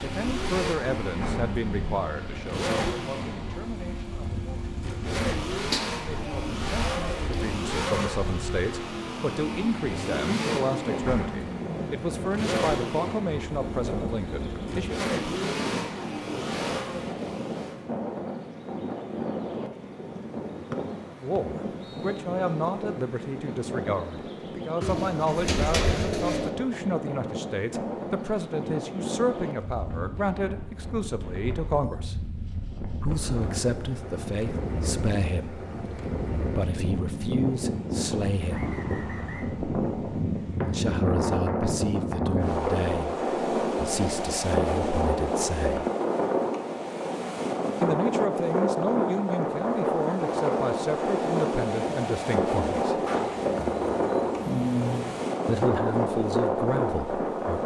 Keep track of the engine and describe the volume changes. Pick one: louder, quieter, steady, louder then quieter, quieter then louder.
steady.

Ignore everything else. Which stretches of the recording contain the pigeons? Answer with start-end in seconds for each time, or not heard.
5.7-7.5, 24.8-26.5, 53.0-55.2.